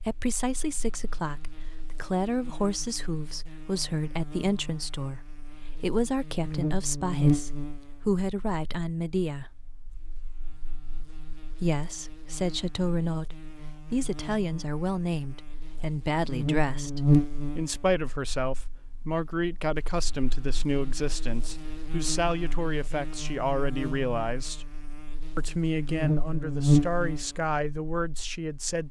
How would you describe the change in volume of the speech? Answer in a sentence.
The volume of the speech stays about the same.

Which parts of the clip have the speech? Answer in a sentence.
The speech can be heard from 0.1 to 9.6 s, from 11.6 to 24.7 s and from 25.4 to 28.8 s.